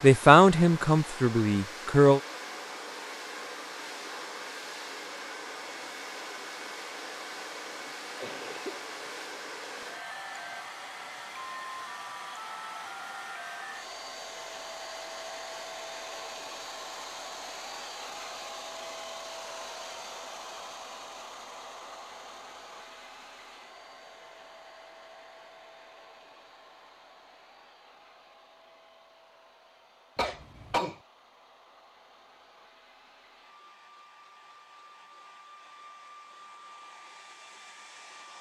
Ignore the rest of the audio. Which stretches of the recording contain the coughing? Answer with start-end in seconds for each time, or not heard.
7.8-9.1, 30.1-31.0.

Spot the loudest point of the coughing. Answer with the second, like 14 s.
31 s.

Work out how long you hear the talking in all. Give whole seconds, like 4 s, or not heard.
2 s.